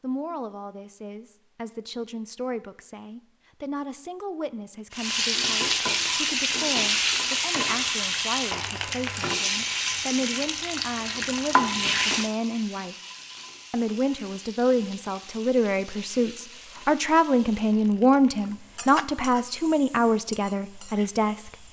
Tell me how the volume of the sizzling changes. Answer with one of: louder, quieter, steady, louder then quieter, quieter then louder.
quieter.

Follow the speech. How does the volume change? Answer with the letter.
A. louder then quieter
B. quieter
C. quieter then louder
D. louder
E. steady
D.